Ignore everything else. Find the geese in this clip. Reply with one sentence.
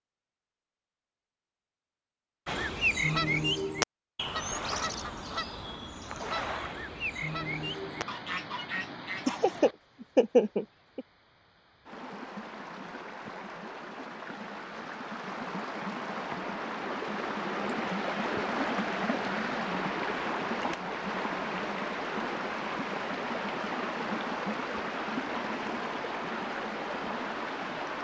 The geese can be heard from 2.5 to 9.4 s.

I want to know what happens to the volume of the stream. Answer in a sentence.
The volume of the stream goes up.